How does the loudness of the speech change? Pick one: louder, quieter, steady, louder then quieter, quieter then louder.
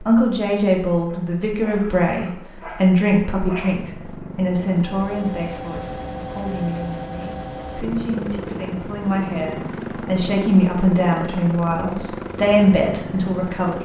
quieter then louder.